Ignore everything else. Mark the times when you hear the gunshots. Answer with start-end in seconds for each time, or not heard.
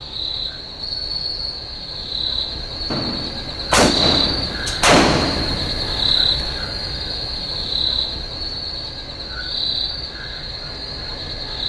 2.9-6.1.